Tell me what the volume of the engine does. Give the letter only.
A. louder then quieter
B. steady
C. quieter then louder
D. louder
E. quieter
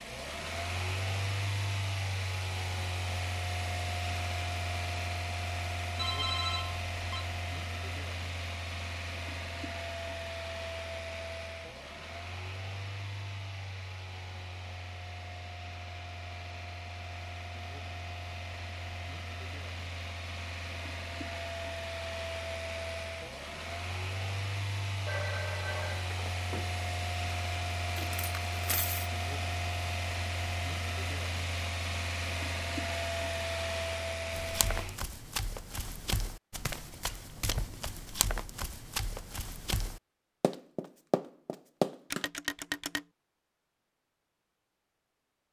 C.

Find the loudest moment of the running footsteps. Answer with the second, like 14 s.
42 s.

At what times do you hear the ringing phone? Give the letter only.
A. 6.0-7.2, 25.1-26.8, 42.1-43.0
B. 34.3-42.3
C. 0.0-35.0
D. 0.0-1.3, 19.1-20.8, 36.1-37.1
A.